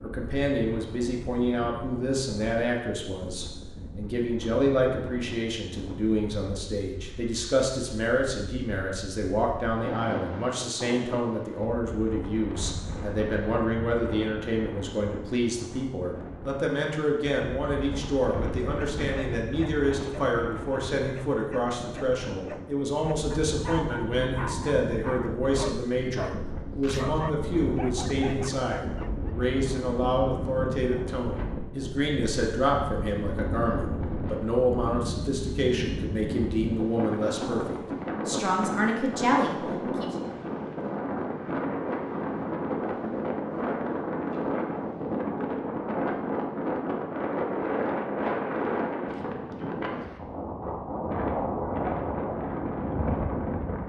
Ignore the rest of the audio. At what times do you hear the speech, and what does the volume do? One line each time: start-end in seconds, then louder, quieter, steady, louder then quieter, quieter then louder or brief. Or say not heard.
0.0-40.1 steady.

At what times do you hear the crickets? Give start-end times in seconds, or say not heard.
not heard.